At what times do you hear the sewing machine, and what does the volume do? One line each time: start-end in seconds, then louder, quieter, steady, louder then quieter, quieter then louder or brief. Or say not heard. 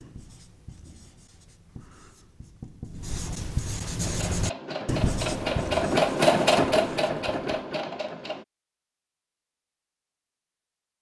4.0-8.4 louder then quieter.